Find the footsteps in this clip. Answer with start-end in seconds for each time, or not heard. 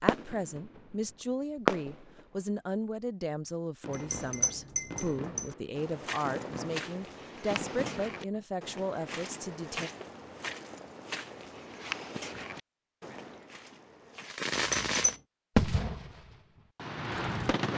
5.8-14.3.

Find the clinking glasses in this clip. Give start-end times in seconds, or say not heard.
3.9-5.5, 14.6-15.2.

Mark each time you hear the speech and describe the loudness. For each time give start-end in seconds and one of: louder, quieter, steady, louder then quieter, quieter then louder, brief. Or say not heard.
0.0-9.9 steady.